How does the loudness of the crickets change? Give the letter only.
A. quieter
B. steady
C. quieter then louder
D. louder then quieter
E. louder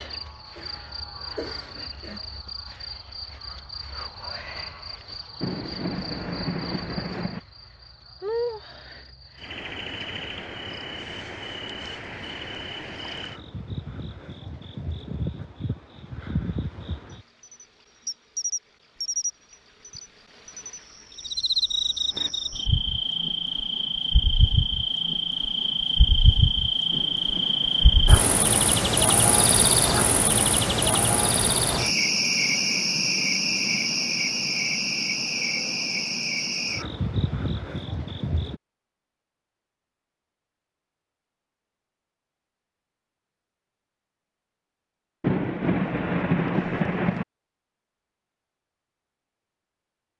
E.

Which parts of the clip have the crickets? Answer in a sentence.
The crickets can be heard from 0.0 to 38.6 s.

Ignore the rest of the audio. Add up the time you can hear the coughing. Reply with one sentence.
The coughing can be heard for 2 seconds in total.